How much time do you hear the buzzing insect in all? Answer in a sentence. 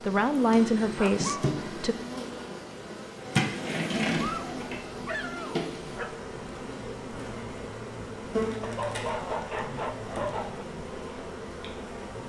The buzzing insect can be heard for 12 seconds in total.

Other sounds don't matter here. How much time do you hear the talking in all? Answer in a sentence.
You can hear the talking for 2 seconds altogether.